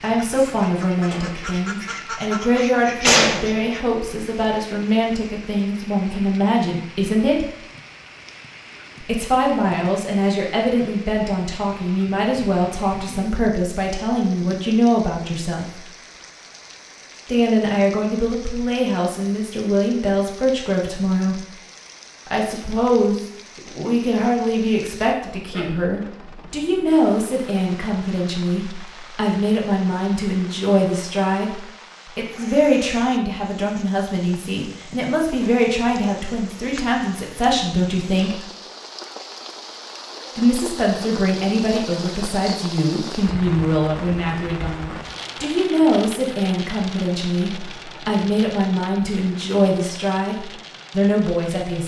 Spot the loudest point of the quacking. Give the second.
3 s.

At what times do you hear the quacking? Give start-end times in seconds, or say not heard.
0.0-3.8.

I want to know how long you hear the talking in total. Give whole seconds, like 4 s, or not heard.
46 s.